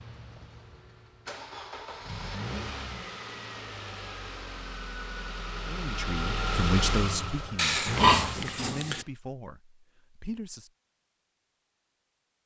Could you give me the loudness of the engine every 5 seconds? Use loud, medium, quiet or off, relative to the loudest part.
medium, loud, off.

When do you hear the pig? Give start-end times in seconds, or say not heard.
7.5-9.1.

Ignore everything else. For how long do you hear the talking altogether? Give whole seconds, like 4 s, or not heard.
5 s.